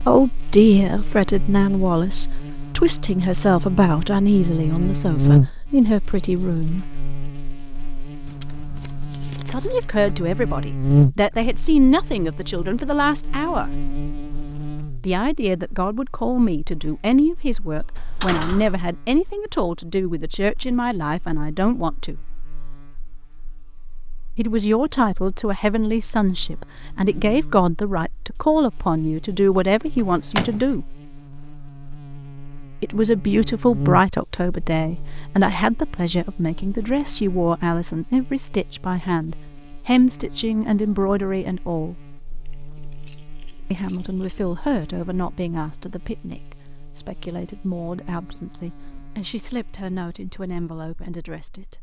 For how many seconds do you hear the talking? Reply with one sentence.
The talking can be heard for 42 seconds in total.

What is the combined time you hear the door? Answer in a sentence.
The door can be heard for 2 seconds in total.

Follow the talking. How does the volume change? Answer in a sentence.
The volume of the talking goes down.